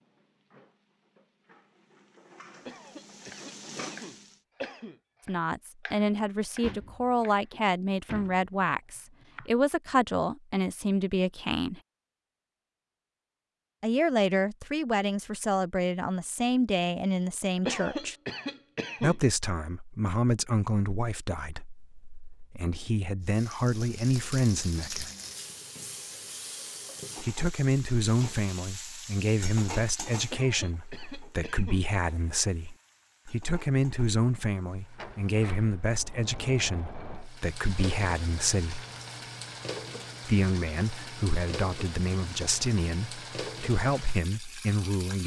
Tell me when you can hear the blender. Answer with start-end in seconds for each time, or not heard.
not heard.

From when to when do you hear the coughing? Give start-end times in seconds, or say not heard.
2.6-5.0, 17.6-19.2, 30.3-31.9.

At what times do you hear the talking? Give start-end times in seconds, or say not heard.
5.2-11.8, 13.8-18.1, 19.0-25.1, 27.1-38.9, 40.2-45.2.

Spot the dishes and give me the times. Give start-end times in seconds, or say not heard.
not heard.